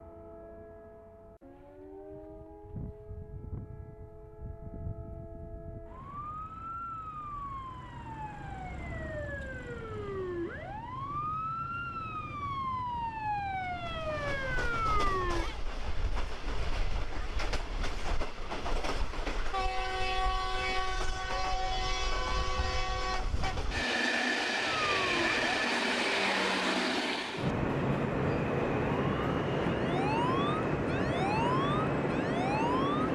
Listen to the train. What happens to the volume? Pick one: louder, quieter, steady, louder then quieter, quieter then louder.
louder.